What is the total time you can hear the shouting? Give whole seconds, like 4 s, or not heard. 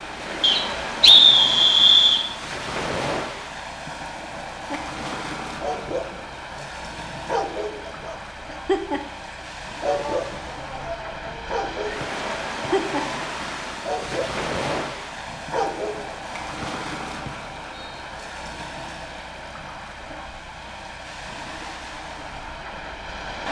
2 s.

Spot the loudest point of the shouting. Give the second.
10 s.